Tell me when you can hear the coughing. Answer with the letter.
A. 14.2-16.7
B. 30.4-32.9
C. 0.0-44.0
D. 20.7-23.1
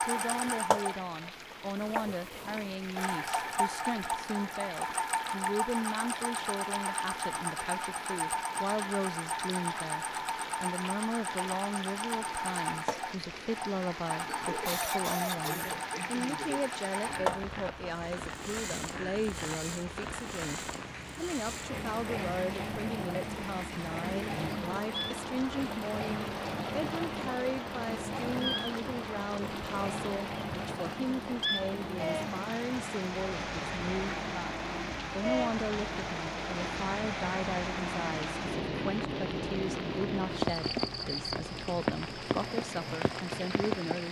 A.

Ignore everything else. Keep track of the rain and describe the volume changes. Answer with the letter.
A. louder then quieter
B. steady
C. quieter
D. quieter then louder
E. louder
E.